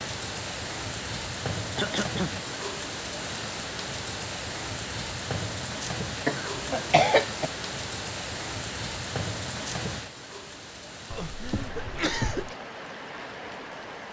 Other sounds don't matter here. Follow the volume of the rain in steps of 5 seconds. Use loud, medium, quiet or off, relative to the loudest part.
loud, loud, medium.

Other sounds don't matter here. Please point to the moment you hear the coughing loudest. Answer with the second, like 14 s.
7 s.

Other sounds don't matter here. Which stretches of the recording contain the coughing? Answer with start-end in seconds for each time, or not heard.
1.8-2.4, 6.2-7.5, 11.1-12.6.